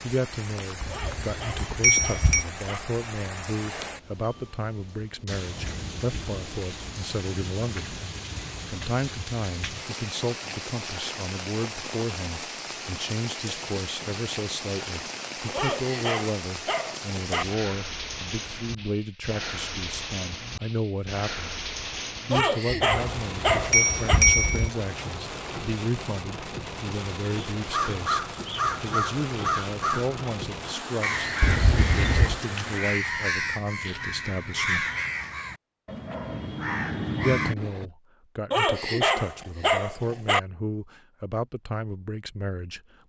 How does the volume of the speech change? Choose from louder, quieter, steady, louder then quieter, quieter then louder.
steady.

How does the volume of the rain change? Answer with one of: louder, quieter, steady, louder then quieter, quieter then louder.
steady.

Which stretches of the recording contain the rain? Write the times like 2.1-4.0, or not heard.
0.0-33.0.